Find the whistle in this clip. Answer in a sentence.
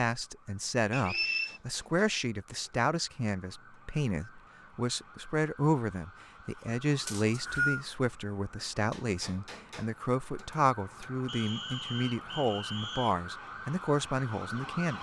You can hear the whistle from 0.9 to 1.6 s, from 7.0 to 7.8 s and from 11.2 to 13.2 s.